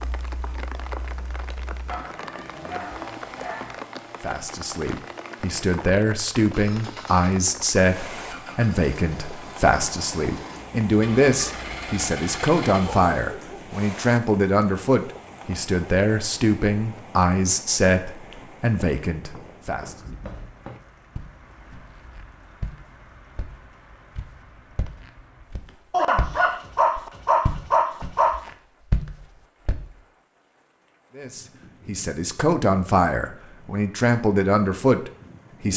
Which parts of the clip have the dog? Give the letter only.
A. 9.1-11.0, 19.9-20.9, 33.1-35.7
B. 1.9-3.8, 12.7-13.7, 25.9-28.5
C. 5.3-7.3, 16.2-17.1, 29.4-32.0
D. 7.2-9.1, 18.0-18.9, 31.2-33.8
B.